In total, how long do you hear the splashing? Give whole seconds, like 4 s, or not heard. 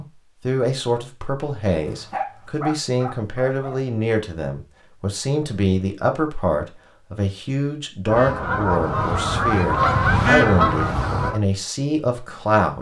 not heard.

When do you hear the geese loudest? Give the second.
10 s.